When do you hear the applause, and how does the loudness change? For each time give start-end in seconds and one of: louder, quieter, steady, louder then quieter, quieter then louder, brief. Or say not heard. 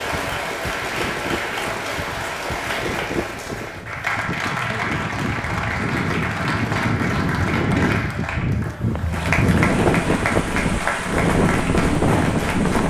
0.0-12.8 steady.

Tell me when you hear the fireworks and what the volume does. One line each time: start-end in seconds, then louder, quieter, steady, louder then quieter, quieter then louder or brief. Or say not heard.
not heard.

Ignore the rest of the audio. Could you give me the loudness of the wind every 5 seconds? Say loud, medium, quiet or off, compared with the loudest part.
medium, loud, loud.